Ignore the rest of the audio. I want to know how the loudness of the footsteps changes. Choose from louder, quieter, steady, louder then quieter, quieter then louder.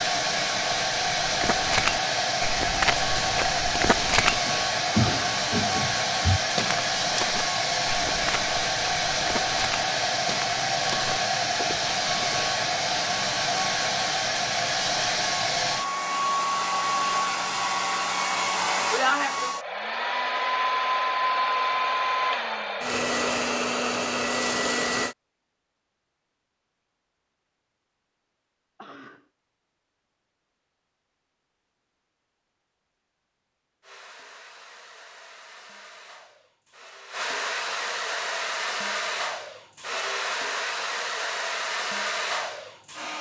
quieter.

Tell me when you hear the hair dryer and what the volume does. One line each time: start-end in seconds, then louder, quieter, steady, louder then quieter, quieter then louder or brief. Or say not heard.
0.0-25.1 steady
33.8-43.1 louder.